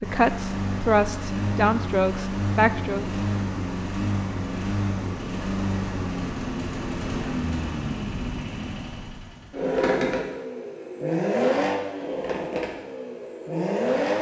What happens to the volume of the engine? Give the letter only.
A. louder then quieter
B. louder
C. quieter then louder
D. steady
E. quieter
D.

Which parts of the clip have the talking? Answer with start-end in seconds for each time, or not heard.
0.0-3.0.